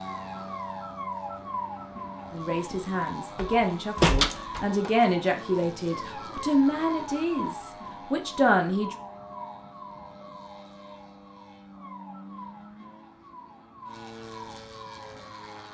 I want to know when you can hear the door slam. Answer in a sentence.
The door slam can be heard from 3.4 to 4.9 s.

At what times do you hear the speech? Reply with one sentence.
You can hear the speech from 2.3 to 8.9 s.